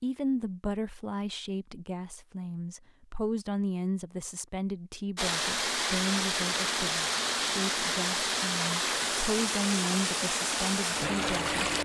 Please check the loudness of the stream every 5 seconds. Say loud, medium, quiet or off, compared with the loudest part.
off, loud, loud.